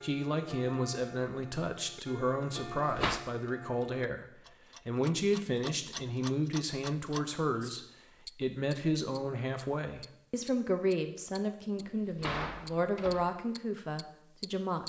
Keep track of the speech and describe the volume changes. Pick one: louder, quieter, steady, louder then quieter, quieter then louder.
steady.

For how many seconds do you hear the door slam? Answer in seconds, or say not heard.
2 s.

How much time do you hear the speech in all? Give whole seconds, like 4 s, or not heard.
15 s.